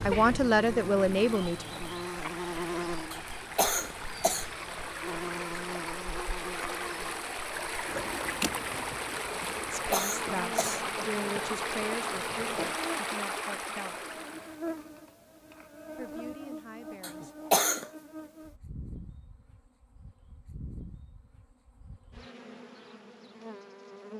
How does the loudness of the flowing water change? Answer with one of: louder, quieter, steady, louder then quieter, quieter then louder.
louder.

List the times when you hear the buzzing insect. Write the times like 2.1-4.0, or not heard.
0.0-24.1.